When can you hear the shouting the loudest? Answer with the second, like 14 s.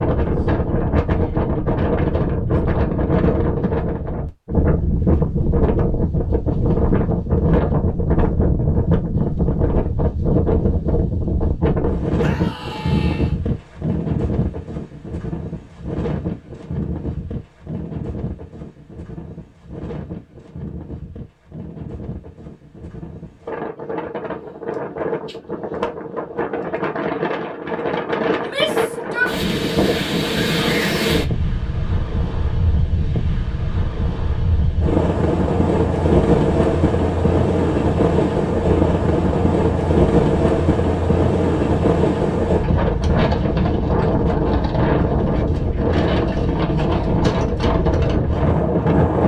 29 s.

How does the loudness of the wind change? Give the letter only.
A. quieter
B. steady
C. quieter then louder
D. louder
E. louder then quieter
C.